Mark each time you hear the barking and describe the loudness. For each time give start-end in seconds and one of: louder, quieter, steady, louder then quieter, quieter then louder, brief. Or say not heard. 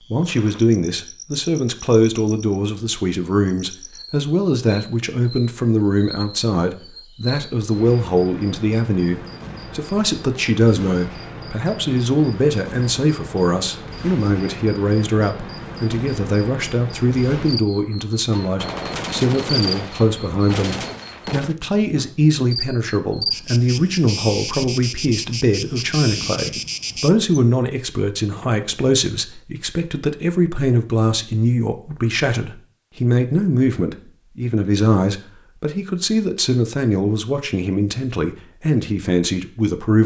not heard.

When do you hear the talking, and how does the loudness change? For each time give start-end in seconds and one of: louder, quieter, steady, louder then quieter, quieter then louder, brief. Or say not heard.
0.1-40.0 steady.